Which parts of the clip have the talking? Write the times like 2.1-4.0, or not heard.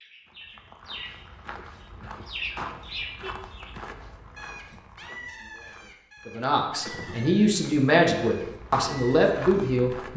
6.2-10.1.